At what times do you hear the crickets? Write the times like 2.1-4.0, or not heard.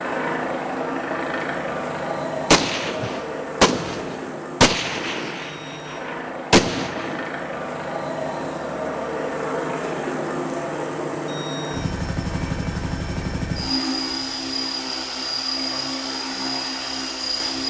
not heard.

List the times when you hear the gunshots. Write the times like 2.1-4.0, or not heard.
2.5-7.2.